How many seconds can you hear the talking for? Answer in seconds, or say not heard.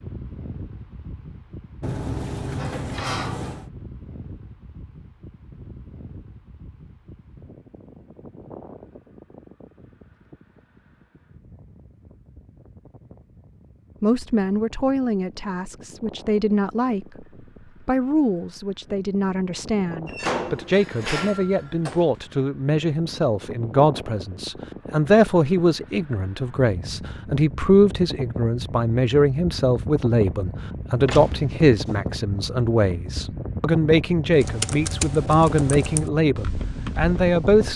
24 s.